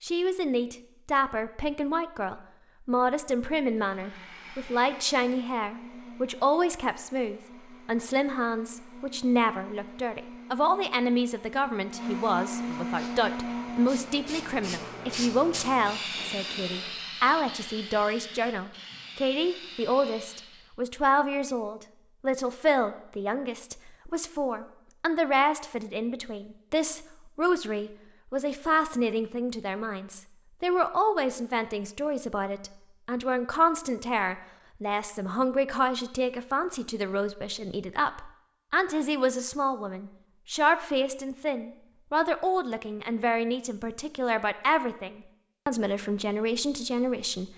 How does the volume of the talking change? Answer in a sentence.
The volume of the talking stays about the same.